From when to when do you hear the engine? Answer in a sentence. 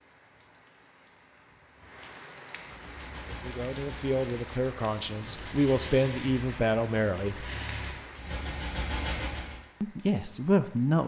The engine can be heard from 2.6 to 9.6 s.